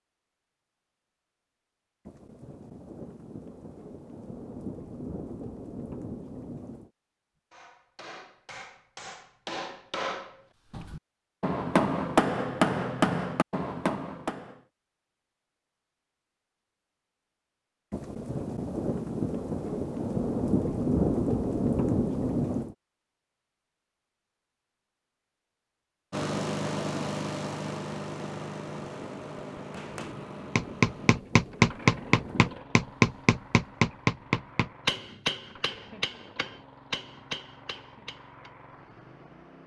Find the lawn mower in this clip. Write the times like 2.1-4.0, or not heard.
26.1-39.6.